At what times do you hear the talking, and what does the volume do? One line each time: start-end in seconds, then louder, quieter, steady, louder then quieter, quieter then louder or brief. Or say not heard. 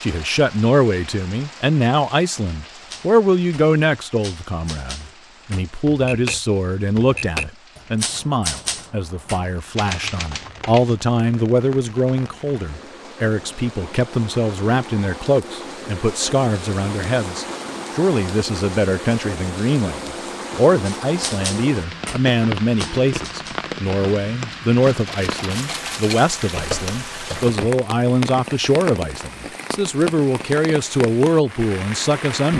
0.0-32.5 steady.